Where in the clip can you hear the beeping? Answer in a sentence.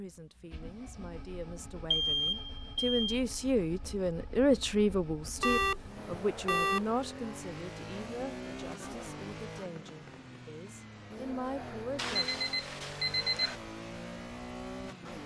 You can hear the beeping from 1.9 to 3.2 s, from 5.4 to 6.9 s and from 11.9 to 13.6 s.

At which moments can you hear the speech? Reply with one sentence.
The speech can be heard from 0.0 to 12.3 s.